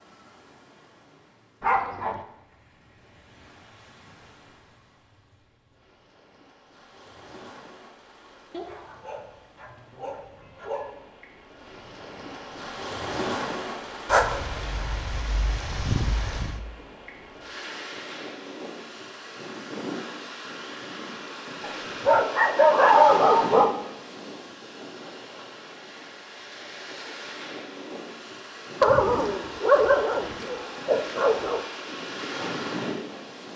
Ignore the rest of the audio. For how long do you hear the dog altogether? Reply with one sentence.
The dog can be heard for 11 seconds in total.